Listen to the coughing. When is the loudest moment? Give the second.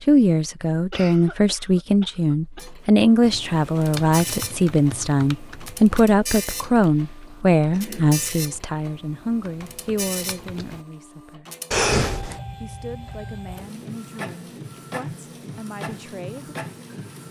12 s.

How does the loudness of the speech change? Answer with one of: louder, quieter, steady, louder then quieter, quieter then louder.
quieter.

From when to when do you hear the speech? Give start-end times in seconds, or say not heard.
0.0-11.4, 12.6-16.6.